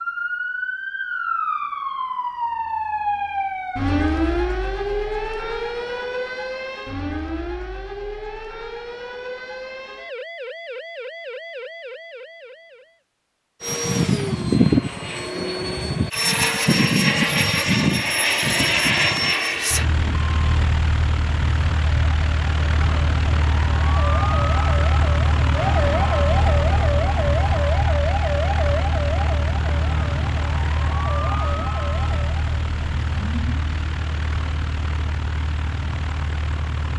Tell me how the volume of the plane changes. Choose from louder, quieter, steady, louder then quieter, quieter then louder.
quieter.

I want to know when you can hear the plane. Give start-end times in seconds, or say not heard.
13.6-36.9.